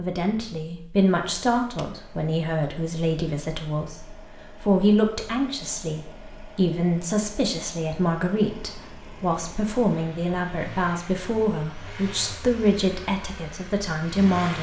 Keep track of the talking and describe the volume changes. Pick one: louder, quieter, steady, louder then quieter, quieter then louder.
steady.